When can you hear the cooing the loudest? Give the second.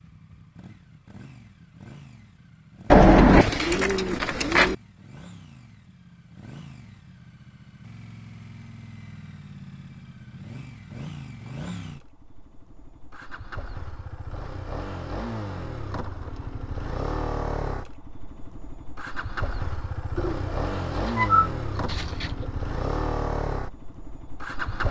3 s.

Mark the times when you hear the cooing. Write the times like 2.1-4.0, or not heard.
2.9-4.8, 20.1-22.4.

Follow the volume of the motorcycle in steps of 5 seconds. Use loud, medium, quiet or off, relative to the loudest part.
quiet, quiet, medium, loud, loud.